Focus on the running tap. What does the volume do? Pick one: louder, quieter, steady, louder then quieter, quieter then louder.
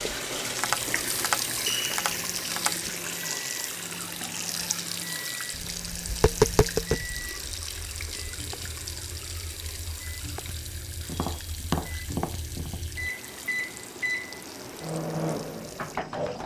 quieter.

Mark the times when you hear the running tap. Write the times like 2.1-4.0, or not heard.
0.0-16.4.